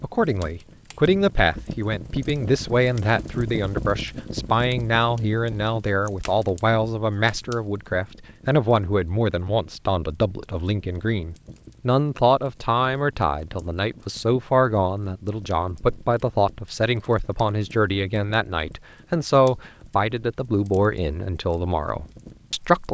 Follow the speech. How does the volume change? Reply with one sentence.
The loudness of the speech stays about the same.